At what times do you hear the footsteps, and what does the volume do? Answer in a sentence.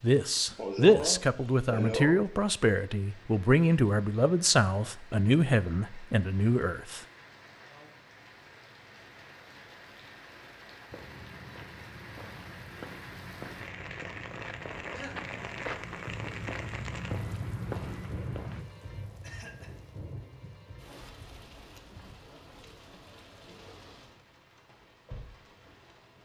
You can hear the footsteps from 10.9 to 18.6 s, getting louder.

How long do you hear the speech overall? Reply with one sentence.
The speech can be heard for 7 seconds in total.